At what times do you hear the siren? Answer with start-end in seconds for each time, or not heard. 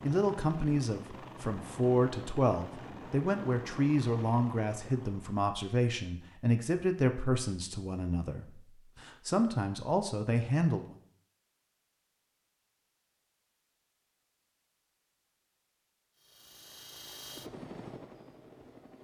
not heard.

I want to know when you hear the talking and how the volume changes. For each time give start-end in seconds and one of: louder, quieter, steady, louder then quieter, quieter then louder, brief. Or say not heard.
0.0-10.9 steady.